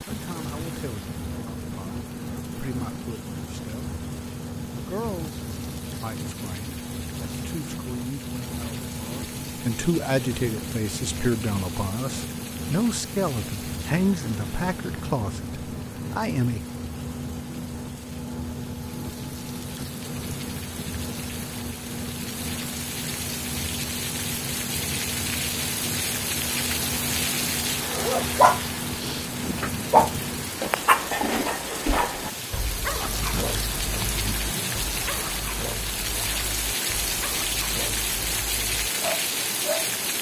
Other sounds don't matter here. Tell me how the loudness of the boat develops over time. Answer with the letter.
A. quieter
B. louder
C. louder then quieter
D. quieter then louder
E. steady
E.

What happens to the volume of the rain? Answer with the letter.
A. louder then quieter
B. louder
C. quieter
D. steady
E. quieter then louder
B.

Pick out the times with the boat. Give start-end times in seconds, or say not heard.
0.0-30.6.